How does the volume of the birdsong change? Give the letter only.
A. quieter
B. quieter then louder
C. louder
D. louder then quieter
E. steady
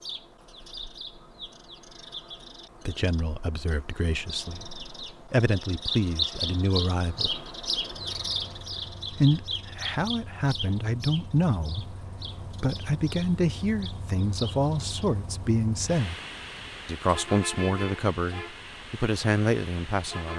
D.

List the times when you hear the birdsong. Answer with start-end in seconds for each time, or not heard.
0.0-15.2.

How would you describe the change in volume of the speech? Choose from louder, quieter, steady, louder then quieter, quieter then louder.
steady.